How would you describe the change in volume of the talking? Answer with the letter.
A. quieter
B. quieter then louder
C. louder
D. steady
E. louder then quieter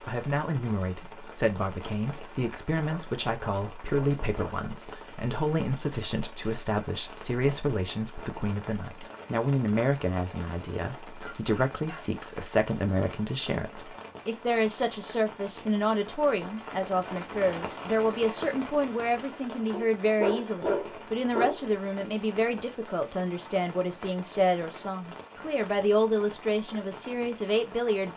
D.